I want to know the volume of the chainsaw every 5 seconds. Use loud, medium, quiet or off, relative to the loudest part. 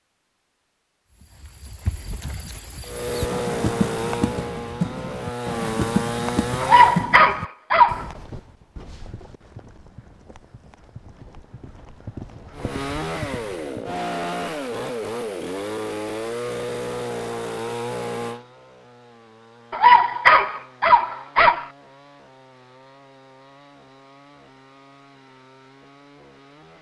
loud, loud, loud, loud, quiet, quiet.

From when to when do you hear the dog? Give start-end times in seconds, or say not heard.
6.6-8.1, 19.7-21.6.